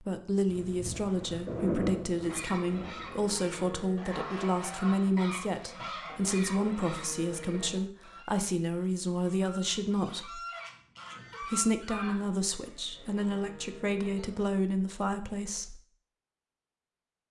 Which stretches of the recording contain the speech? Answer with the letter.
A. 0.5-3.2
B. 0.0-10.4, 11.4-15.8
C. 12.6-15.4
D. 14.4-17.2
B.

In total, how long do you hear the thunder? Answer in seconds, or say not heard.
3 s.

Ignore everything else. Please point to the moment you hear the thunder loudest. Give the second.
2 s.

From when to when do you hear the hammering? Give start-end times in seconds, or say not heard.
not heard.